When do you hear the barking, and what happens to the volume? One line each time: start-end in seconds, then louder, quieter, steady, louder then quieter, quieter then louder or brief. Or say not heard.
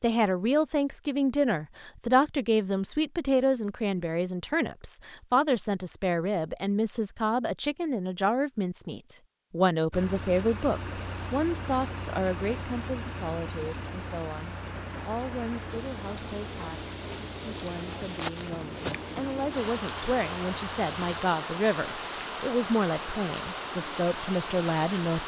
not heard.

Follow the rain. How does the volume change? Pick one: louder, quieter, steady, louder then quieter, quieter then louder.
louder.